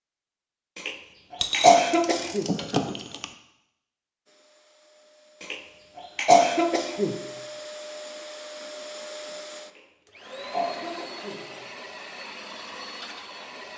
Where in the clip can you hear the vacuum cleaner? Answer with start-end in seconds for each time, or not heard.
4.2-13.7.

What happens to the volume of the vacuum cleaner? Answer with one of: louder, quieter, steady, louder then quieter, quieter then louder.
louder.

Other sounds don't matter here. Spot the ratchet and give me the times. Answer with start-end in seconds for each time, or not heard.
1.4-3.3.